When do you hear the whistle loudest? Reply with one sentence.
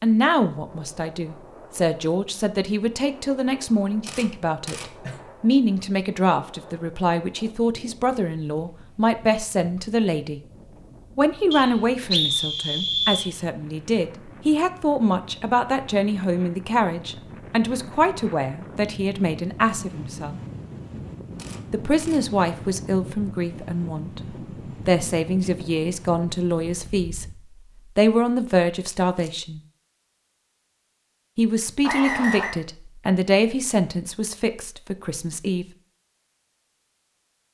The loudest moment of the whistle is at 12 seconds.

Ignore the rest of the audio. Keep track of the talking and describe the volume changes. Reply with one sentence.
The loudness of the talking stays about the same.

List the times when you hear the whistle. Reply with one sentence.
The whistle can be heard from 11.5 to 13.3 s and from 31.9 to 32.5 s.